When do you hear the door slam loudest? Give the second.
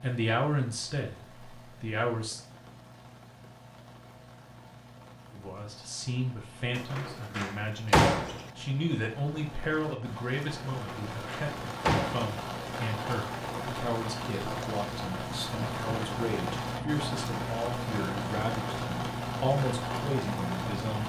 8 s.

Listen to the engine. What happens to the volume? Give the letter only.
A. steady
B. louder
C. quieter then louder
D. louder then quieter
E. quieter
B.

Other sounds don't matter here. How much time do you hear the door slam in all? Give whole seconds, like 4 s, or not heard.
3 s.